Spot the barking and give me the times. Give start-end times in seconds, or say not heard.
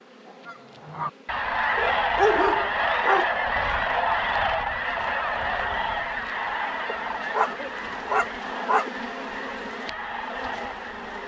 1.8-3.3, 6.8-8.9.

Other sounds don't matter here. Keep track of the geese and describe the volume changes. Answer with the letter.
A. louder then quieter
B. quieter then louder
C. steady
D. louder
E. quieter
E.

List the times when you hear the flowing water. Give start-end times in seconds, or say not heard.
not heard.